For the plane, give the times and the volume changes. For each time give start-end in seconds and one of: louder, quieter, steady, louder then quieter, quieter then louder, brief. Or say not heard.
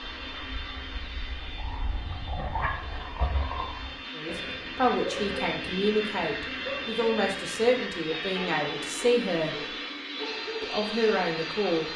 0.0-11.9 louder.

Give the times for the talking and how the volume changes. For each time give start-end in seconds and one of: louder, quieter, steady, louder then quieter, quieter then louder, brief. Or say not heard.
4.2-9.8 steady
10.6-11.9 brief.